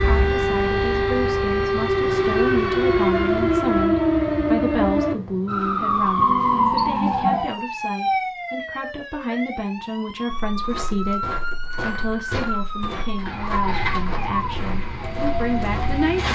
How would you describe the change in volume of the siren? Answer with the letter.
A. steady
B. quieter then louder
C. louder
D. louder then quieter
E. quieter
E.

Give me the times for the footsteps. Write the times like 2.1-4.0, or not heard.
10.3-16.2.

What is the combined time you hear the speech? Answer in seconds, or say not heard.
16 s.